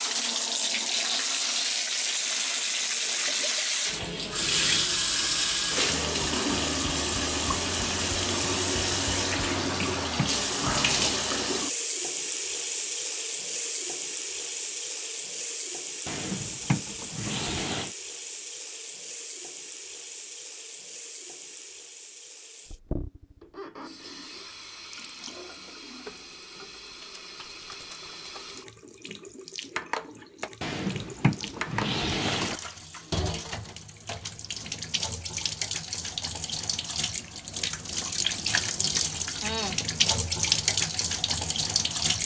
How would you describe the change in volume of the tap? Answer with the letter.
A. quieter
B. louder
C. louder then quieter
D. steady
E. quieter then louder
E.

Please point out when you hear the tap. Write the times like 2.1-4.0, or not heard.
0.0-42.2.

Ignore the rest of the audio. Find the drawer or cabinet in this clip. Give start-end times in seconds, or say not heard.
9.6-11.2, 16.1-17.9, 30.6-32.5.